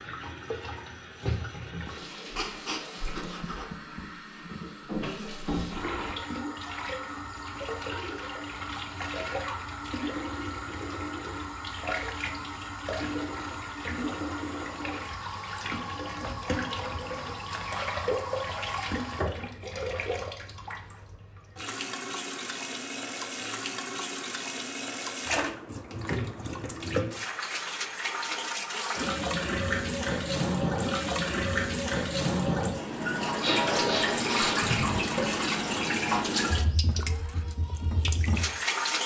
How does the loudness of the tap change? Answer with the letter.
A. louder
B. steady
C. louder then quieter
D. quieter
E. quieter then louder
A.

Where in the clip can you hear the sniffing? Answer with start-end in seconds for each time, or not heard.
2.4-3.6, 33.4-35.0.